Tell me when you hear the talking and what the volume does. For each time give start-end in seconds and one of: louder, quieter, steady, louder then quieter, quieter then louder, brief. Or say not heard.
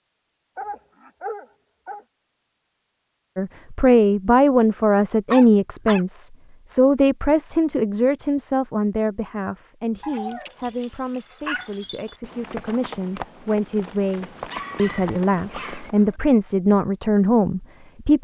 3.4-18.2 quieter then louder.